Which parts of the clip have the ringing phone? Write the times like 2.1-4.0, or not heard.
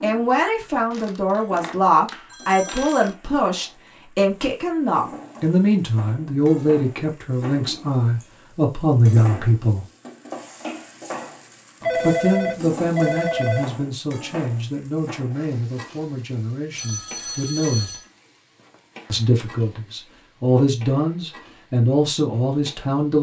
0.9-3.1, 11.8-13.7, 16.8-18.1.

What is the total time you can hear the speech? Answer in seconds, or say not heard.
20 s.